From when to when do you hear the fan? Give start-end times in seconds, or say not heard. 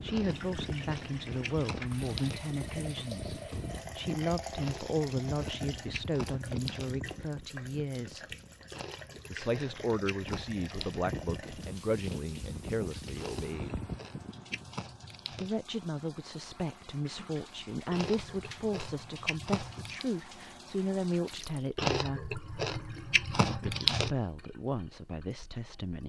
0.0-14.8.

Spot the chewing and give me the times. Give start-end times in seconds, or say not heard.
0.1-2.4, 4.5-6.9, 8.7-11.1, 13.2-15.5, 17.9-20.1, 21.8-24.1.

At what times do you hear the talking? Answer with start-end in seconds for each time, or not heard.
0.0-8.2, 9.2-13.8, 15.3-22.4, 23.4-26.0.